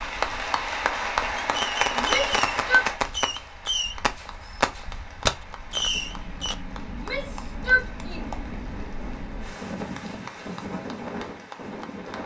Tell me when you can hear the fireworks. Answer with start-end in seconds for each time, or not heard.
1.4-6.5.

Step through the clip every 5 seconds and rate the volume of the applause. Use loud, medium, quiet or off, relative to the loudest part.
loud, quiet, quiet.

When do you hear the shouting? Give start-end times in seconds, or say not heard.
1.9-2.9, 6.9-8.2.